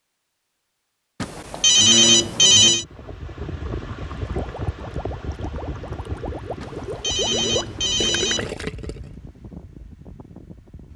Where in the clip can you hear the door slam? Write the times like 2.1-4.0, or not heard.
not heard.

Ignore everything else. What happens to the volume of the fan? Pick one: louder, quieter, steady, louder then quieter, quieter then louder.
quieter.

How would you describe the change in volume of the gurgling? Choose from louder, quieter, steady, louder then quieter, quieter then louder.
louder.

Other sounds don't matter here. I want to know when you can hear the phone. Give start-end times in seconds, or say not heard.
1.2-2.9, 6.6-8.6.